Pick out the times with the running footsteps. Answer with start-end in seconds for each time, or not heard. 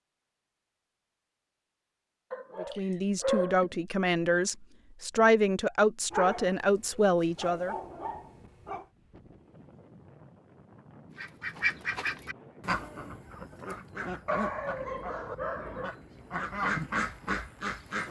not heard.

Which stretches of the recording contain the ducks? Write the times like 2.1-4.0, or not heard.
11.2-18.0.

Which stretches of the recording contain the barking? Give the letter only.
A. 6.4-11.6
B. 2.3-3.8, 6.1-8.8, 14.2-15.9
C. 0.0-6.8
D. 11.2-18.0
B.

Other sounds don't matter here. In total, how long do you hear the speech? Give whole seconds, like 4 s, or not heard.
5 s.